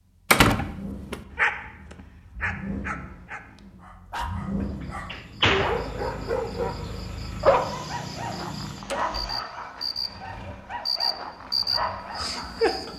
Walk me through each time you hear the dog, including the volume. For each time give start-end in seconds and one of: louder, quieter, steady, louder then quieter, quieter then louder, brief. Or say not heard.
1.3-12.7 louder then quieter.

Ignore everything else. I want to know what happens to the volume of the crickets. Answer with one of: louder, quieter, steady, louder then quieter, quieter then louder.
louder.